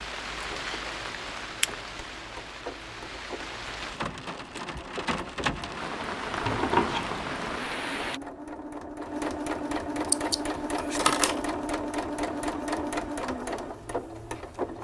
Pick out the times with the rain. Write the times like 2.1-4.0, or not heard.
0.0-8.2.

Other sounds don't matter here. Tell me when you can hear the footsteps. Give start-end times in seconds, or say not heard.
not heard.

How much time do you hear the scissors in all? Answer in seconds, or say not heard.
2 s.